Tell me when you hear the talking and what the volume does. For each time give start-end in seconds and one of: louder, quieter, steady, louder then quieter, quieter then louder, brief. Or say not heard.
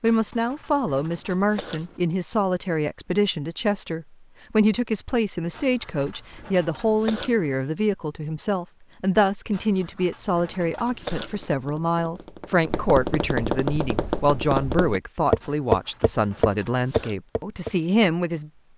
0.0-18.5 steady.